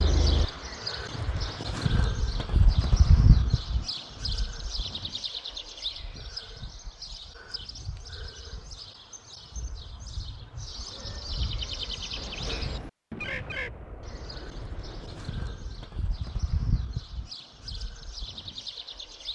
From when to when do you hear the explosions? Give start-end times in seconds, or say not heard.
13.1-15.8.